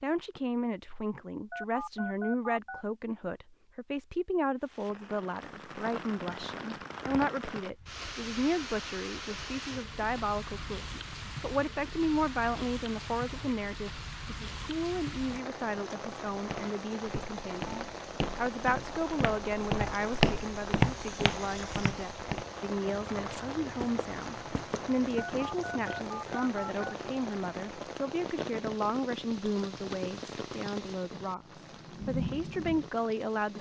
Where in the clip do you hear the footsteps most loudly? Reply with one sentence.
The loudest moment of the footsteps is at 21 seconds.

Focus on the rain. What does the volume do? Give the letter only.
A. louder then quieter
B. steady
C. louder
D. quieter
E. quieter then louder
B.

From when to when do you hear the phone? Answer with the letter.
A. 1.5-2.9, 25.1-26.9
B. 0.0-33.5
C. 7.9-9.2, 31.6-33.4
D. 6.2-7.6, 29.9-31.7
A.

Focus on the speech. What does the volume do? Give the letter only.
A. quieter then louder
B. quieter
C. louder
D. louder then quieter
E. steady
E.